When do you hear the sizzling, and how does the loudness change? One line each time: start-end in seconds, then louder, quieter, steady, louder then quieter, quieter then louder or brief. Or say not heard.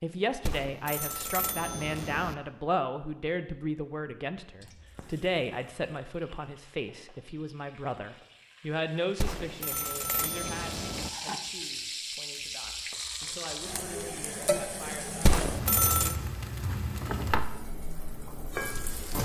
4.6-19.2 louder.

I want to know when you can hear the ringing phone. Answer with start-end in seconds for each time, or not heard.
0.5-2.4, 9.2-11.1, 15.2-16.1.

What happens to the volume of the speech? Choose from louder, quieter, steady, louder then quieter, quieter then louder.
quieter.